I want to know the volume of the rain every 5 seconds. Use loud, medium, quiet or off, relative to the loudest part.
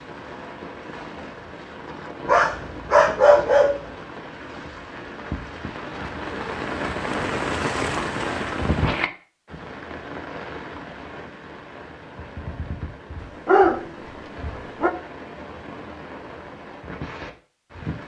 medium, loud, medium, medium.